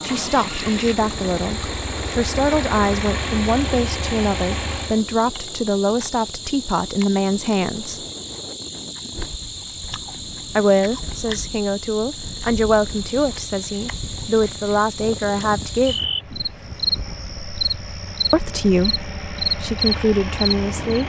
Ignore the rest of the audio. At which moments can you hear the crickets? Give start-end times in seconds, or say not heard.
0.0-20.8.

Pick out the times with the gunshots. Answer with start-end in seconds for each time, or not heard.
not heard.